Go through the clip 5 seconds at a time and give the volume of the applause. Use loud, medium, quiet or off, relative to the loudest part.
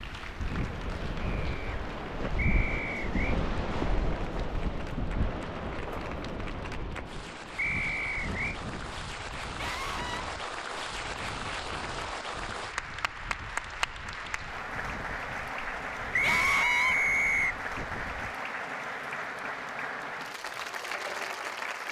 medium, medium, loud, loud, loud.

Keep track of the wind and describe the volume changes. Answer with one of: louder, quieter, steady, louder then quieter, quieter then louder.
quieter.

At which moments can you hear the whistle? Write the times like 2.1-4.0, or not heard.
2.4-3.4, 7.5-8.6, 16.1-17.6.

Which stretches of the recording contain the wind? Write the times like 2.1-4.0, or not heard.
0.0-18.4.